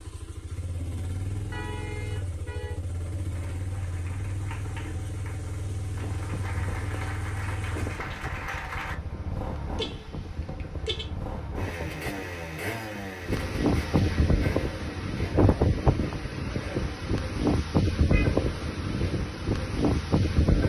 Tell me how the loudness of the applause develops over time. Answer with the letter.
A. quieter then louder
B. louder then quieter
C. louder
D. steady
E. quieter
C.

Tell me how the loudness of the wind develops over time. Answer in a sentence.
The loudness of the wind goes up.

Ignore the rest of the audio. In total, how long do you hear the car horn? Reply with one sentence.
You can hear the car horn for 3 seconds altogether.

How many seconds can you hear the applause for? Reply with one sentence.
You can hear the applause for 6 seconds altogether.